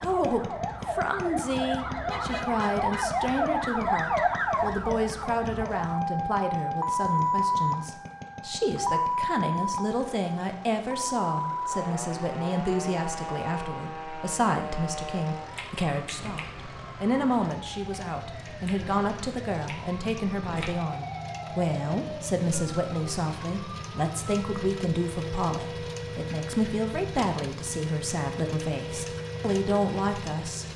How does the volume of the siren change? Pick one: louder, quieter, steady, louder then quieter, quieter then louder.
quieter.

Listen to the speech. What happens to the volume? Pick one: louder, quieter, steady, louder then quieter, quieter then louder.
steady.